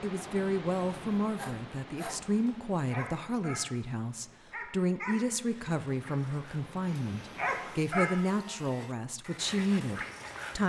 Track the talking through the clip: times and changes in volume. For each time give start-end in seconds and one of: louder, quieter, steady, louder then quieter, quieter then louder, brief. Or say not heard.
0.0-10.6 steady.